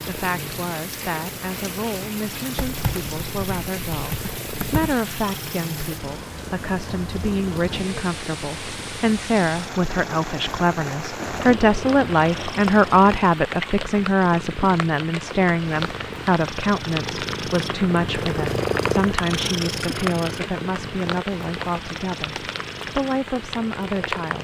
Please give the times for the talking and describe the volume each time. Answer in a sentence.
The talking can be heard from 0.1 to 24.4 s, getting louder then quieter.